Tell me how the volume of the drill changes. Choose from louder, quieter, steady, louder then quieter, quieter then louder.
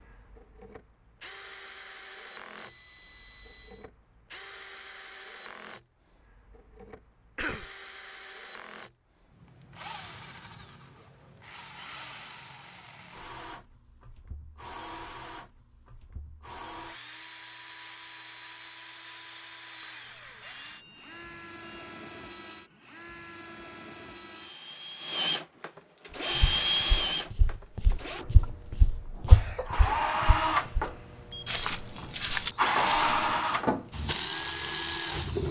louder.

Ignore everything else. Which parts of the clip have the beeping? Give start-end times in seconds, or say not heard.
2.5-3.9, 20.1-21.9, 30.8-31.6.